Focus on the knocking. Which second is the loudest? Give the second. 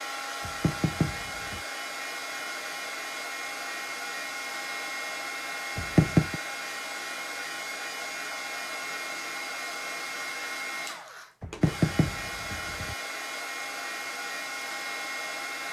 6 s.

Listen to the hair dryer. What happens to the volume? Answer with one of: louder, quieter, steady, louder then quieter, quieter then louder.
steady.